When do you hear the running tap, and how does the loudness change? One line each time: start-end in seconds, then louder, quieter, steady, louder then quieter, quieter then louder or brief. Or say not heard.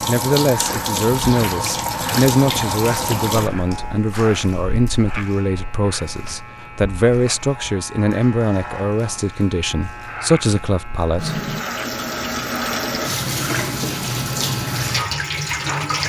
0.0-16.0 quieter then louder.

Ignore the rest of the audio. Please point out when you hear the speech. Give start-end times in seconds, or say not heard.
0.1-11.4.